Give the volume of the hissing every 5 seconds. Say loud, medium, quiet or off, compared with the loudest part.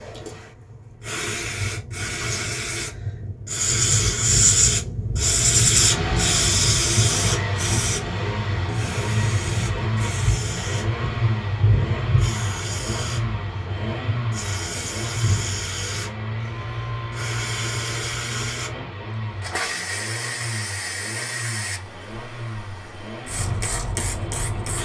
loud, loud, medium, medium, medium.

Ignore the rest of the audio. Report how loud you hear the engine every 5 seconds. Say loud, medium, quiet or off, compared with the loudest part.
off, loud, loud, loud, medium.